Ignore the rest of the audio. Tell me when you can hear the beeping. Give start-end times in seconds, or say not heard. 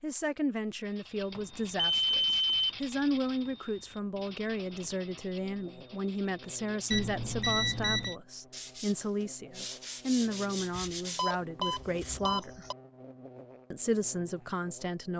1.4-2.8, 6.9-8.2, 10.8-12.8.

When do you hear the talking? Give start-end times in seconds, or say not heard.
0.0-12.7, 13.7-15.1.